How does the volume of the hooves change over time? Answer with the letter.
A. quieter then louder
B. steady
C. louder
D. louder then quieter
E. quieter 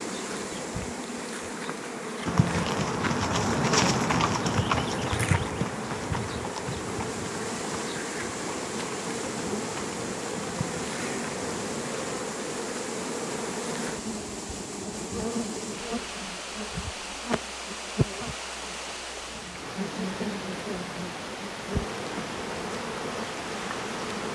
E.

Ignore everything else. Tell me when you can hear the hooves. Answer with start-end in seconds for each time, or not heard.
2.2-12.3.